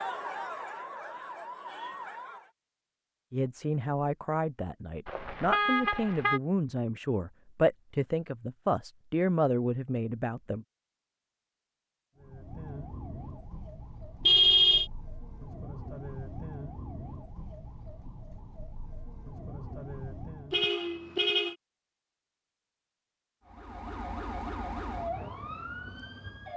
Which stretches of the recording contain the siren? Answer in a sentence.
You can hear the siren from 0.0 to 2.5 s, from 12.2 to 20.7 s and from 23.4 to 26.5 s.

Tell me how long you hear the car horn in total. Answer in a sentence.
The car horn can be heard for 3 seconds in total.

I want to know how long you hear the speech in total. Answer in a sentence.
You can hear the speech for 7 seconds altogether.